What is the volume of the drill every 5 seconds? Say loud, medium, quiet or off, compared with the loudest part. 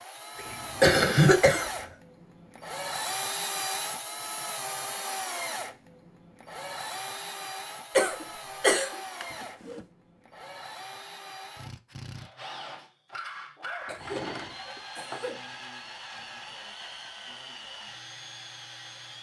loud, loud, medium, medium.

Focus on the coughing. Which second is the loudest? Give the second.
1 s.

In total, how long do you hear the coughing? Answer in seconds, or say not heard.
4 s.